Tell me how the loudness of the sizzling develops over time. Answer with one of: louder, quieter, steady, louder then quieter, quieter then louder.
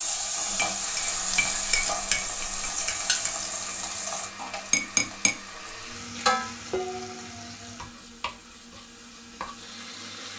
quieter.